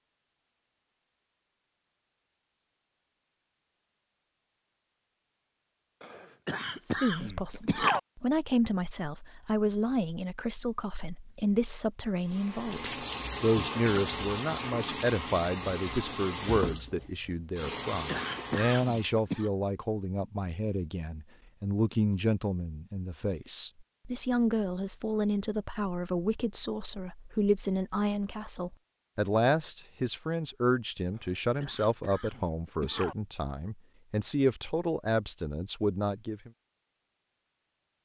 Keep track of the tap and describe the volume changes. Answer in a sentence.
The loudness of the tap stays about the same.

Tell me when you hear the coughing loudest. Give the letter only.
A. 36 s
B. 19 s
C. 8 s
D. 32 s
C.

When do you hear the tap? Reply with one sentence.
The tap can be heard from 12.2 to 19.1 s.